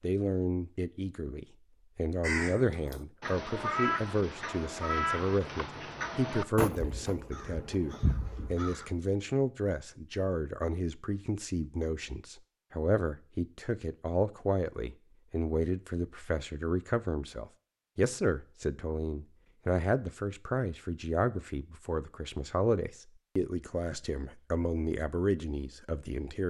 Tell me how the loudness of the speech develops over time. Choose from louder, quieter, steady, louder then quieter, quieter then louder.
steady.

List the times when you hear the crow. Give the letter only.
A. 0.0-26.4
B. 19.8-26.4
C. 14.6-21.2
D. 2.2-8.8
D.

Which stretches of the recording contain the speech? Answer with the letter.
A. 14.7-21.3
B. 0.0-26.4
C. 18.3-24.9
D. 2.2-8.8
B.